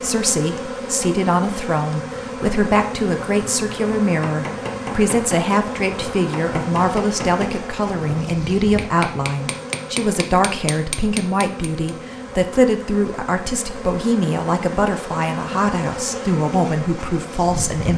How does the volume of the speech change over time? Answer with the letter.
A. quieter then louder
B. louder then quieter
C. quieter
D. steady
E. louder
D.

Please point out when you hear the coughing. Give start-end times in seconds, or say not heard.
not heard.